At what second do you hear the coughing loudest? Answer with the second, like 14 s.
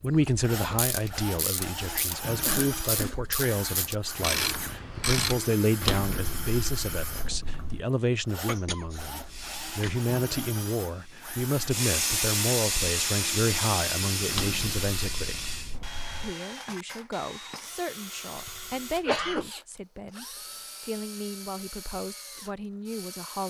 19 s.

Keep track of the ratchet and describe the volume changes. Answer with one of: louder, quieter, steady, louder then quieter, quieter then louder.
louder.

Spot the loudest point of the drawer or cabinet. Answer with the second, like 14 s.
6 s.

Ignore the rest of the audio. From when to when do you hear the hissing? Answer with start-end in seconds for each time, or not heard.
9.2-15.8.